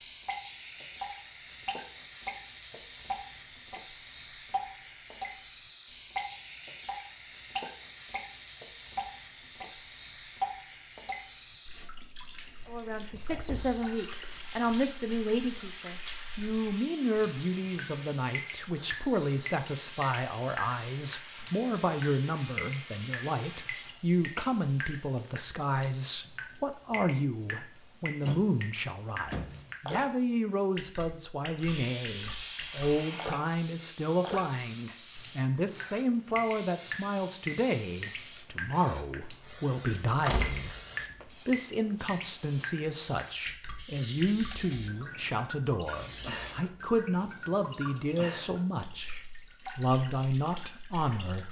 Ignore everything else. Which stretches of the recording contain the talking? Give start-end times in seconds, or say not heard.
12.7-40.8, 41.5-51.4.